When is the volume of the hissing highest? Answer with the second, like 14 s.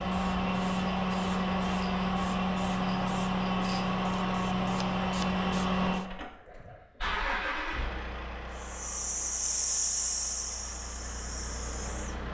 10 s.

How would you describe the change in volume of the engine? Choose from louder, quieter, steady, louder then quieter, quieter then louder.
quieter.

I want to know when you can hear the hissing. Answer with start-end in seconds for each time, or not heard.
0.1-6.0, 8.6-12.2.